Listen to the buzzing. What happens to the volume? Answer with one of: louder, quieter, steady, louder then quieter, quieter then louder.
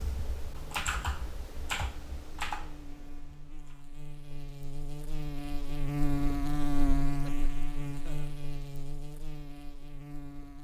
louder then quieter.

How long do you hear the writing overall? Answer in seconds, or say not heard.
not heard.